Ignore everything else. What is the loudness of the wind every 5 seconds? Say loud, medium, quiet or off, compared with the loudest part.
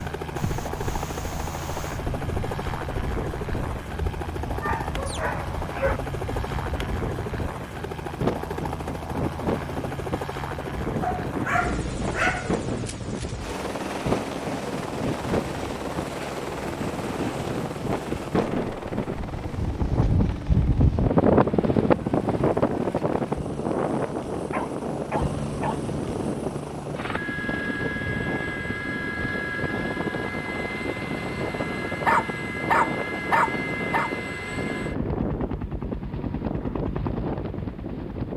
quiet, medium, medium, medium, loud, medium, medium, medium.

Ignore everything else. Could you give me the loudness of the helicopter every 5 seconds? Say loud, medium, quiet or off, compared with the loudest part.
loud, loud, loud, loud, medium, loud, loud, loud.